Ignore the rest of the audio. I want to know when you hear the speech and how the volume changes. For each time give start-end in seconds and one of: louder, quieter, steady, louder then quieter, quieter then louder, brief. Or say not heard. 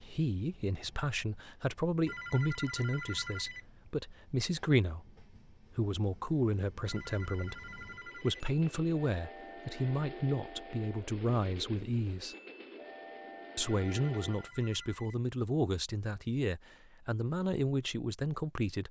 0.0-12.3 steady
13.6-18.8 steady.